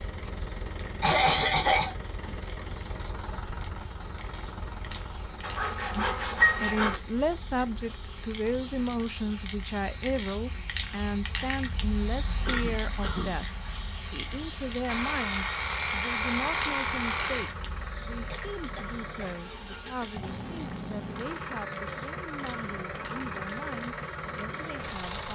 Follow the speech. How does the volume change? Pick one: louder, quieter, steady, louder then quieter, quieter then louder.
quieter.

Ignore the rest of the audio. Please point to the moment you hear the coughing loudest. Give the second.
1 s.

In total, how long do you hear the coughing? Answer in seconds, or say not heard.
3 s.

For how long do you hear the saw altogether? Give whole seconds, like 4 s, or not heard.
4 s.